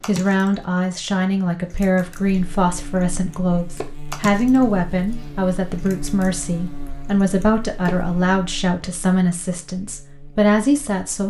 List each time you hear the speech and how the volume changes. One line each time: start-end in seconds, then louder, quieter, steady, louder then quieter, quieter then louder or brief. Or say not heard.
0.1-11.2 steady.